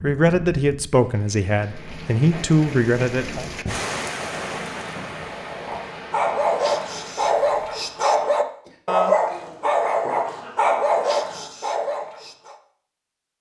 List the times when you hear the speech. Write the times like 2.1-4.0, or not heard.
0.0-3.5.